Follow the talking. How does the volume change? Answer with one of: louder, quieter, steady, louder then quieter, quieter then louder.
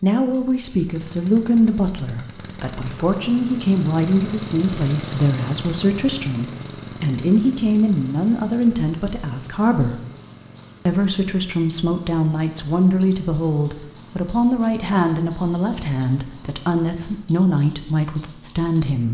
steady.